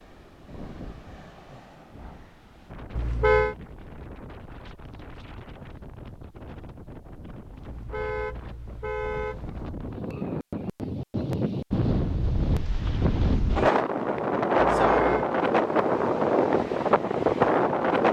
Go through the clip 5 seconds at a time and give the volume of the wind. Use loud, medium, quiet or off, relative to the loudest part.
quiet, quiet, loud, loud.